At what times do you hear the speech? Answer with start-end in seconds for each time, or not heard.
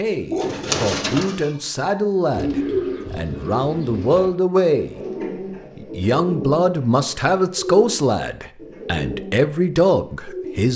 0.0-5.0, 5.8-10.7.